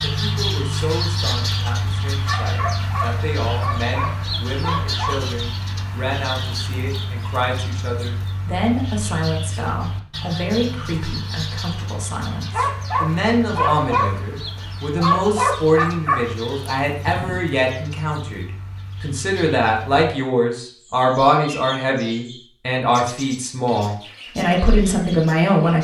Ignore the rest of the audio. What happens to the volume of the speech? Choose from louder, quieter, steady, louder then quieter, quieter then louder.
louder.